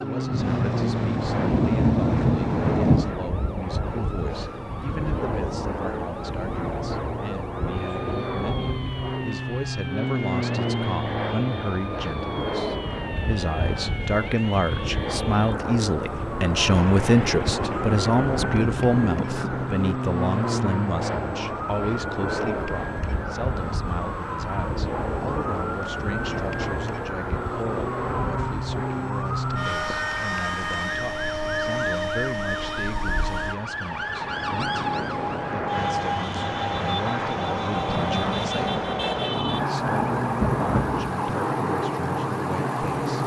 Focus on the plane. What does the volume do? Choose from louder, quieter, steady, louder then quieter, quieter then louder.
steady.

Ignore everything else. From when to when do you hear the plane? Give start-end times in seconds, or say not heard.
0.0-43.2.